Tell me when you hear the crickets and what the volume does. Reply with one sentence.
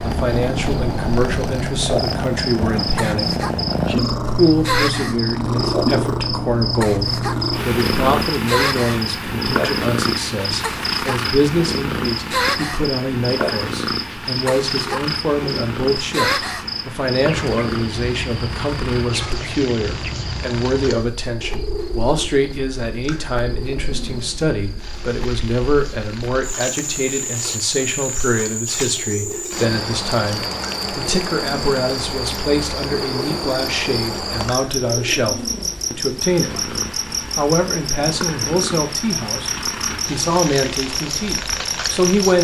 You can hear the crickets from 0.0 to 42.3 s, getting quieter then louder.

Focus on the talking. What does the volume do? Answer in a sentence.
The volume of the talking stays about the same.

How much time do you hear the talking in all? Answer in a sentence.
You can hear the talking for 41 seconds altogether.